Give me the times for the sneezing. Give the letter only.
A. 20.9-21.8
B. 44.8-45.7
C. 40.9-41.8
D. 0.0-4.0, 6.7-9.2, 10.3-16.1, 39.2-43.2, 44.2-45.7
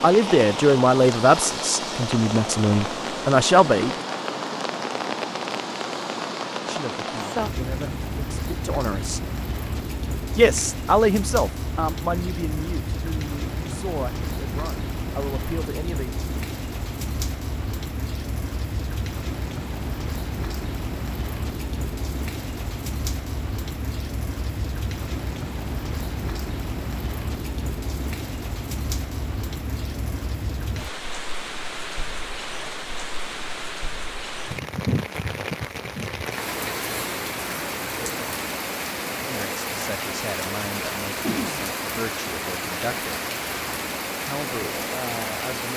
C.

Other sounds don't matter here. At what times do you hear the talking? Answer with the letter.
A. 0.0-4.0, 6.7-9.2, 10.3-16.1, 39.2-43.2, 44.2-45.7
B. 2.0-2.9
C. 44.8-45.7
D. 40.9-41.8
A.